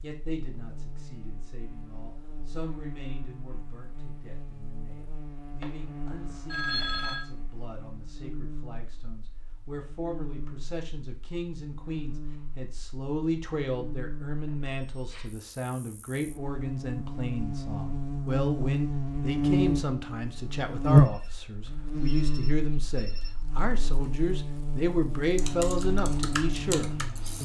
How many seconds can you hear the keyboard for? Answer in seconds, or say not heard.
2 s.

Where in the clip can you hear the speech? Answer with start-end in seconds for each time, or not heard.
0.0-27.3.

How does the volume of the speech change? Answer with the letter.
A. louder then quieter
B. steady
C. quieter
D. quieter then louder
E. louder
E.